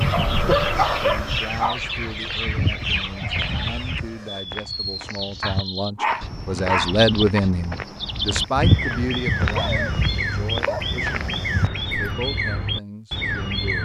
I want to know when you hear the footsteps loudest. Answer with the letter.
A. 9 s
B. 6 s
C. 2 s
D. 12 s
A.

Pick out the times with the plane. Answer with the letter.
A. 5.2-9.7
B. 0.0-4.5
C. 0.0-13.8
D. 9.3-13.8
B.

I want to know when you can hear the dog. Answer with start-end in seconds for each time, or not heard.
0.1-1.8, 5.4-7.4, 9.4-11.0.